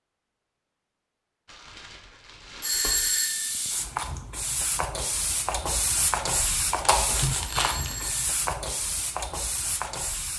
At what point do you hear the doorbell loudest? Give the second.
3 s.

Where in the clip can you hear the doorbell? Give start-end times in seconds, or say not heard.
2.6-3.5, 7.5-8.2.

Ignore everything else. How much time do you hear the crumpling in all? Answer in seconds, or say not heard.
3 s.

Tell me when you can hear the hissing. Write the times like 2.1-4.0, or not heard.
2.6-10.3.